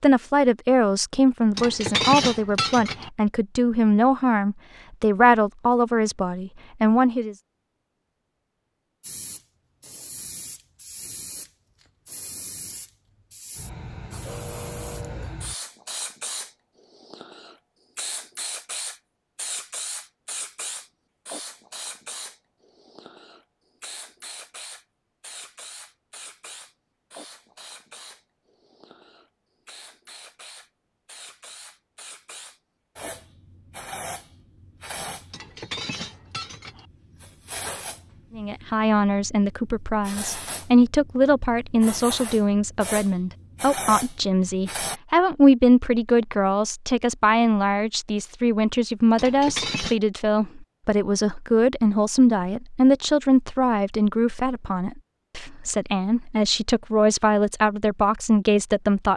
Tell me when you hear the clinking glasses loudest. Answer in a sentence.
The volume of the clinking glasses peaks at 2 seconds.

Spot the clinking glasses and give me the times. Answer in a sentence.
The clinking glasses can be heard from 1.6 to 3.1 s, from 35.3 to 36.9 s and from 49.1 to 50.0 s.